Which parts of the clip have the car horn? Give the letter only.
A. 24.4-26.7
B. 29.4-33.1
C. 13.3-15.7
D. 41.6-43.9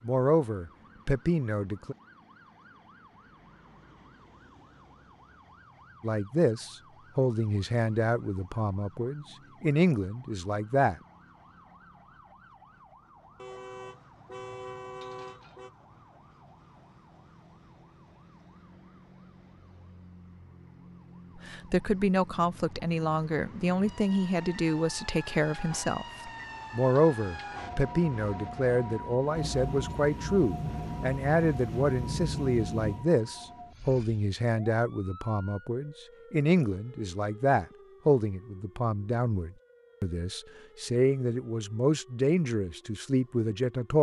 C.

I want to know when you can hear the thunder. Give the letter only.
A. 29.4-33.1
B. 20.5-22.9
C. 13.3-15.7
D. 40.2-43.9
A.